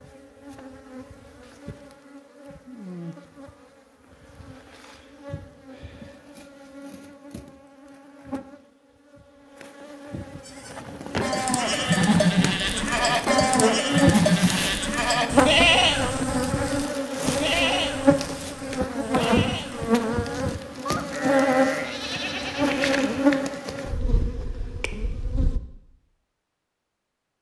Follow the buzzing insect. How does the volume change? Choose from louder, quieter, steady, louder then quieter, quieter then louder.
louder.